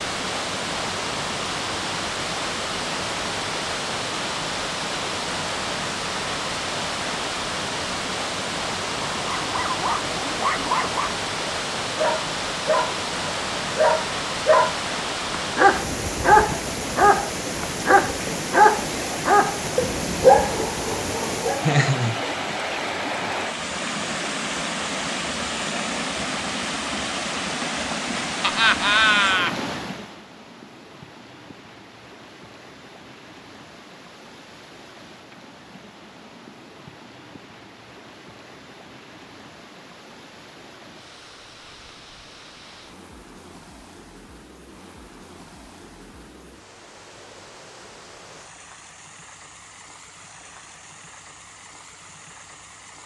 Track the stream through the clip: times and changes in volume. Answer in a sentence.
You can hear the stream from 0.0 to 53.0 s, getting quieter.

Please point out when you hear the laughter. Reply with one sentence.
You can hear the laughter from 21.6 to 22.2 s and from 28.4 to 29.6 s.